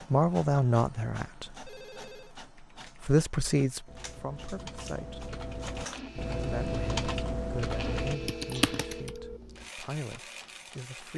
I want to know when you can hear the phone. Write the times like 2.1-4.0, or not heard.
1.6-2.4, 8.1-9.4.